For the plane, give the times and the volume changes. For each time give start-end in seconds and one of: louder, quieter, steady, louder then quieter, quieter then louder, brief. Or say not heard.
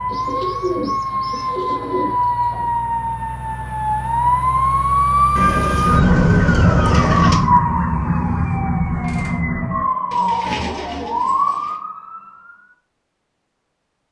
not heard.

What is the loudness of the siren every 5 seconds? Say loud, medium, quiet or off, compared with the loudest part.
loud, loud, medium.